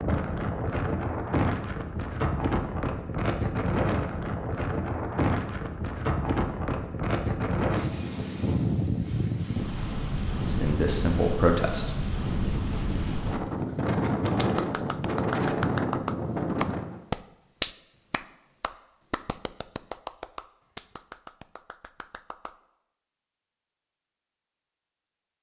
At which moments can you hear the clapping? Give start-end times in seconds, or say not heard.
14.3-22.6.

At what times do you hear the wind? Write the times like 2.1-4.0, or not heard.
0.0-17.0.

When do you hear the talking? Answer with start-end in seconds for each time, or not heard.
10.4-11.9.